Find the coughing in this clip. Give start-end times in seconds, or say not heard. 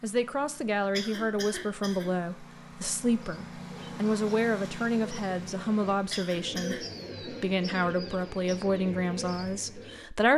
0.9-2.0, 6.1-6.8.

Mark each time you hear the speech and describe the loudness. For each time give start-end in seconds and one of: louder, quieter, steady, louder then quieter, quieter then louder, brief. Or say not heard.
0.0-10.3 steady.